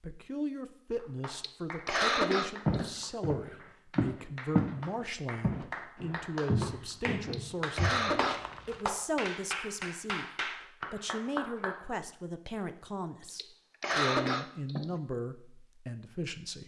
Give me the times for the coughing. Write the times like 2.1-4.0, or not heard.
1.3-3.0, 7.2-8.4, 13.2-14.9.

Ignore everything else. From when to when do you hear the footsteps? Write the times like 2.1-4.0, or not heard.
2.6-4.8, 5.4-8.8.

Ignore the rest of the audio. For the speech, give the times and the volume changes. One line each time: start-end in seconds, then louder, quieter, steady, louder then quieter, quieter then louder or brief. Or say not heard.
0.0-16.6 steady.